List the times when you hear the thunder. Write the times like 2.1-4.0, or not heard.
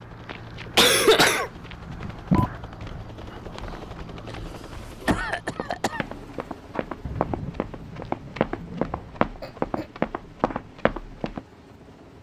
7.0-9.1.